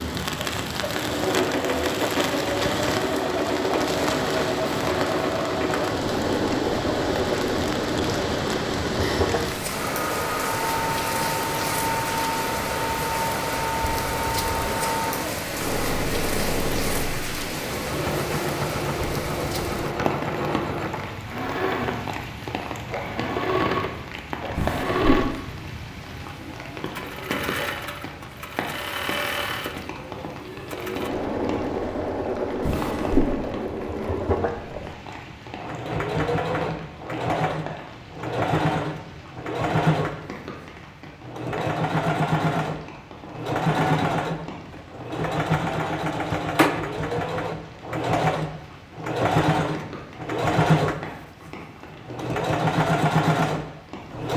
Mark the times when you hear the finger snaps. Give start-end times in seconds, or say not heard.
not heard.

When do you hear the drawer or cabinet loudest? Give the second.
33 s.